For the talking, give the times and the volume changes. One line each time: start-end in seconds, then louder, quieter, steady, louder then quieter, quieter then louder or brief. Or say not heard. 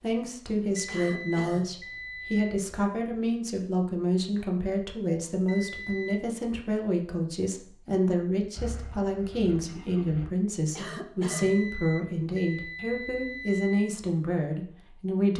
0.0-15.3 steady.